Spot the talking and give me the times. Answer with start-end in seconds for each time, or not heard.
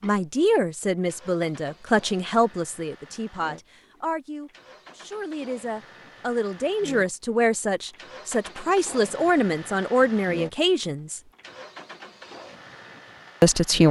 0.0-11.2, 13.4-13.8.